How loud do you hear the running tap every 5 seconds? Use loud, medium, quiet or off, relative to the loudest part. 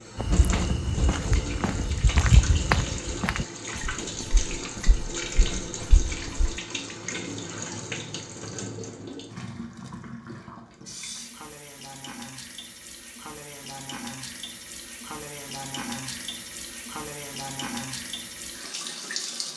loud, loud, medium, loud.